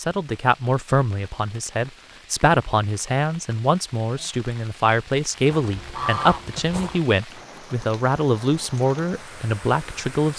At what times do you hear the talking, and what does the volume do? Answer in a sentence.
You can hear the talking from 0.0 to 10.3 s, at a steady volume.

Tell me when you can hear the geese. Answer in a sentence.
You can hear the geese from 5.5 to 7.0 s.